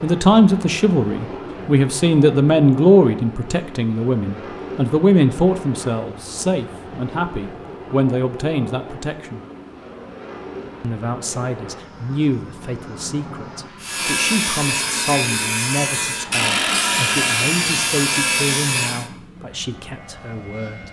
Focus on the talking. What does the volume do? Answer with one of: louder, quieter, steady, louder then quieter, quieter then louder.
quieter.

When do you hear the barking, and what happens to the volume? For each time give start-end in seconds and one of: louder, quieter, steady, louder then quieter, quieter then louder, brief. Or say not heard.
not heard.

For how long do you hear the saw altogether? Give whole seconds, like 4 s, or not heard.
5 s.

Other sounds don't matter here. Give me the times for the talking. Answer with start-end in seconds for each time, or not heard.
0.0-9.4, 10.8-20.8.